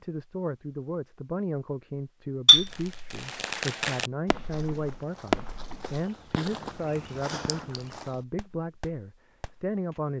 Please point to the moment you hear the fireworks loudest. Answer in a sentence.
The loudest moment of the fireworks is at 5 seconds.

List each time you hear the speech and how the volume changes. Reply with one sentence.
The speech can be heard from 0.0 to 10.1 s, at a steady volume.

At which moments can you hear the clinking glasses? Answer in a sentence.
The clinking glasses can be heard from 2.5 to 3.1 s and from 7.5 to 8.0 s.